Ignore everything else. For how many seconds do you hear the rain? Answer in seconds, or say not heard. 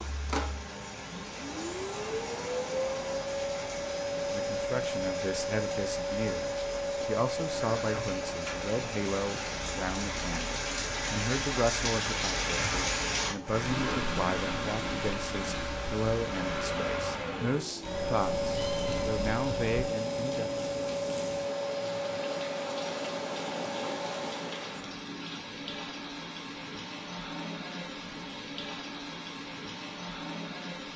31 s.